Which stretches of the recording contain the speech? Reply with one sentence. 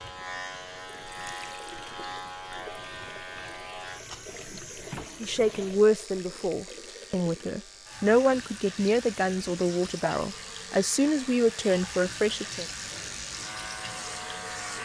You can hear the speech from 5.2 to 12.7 s.